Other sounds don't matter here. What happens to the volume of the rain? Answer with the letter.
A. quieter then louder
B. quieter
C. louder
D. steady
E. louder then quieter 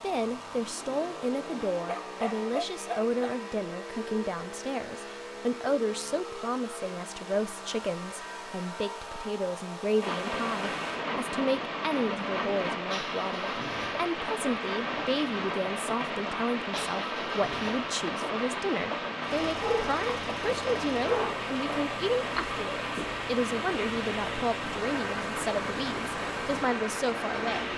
D.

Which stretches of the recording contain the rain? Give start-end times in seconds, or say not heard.
10.0-27.7.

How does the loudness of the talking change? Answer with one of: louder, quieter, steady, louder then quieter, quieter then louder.
steady.